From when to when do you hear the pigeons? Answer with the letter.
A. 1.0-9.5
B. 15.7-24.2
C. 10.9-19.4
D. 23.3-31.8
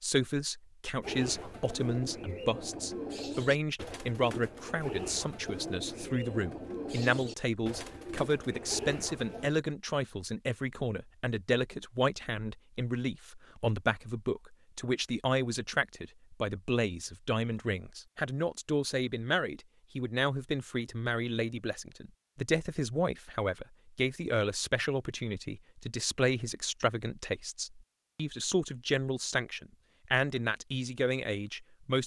A.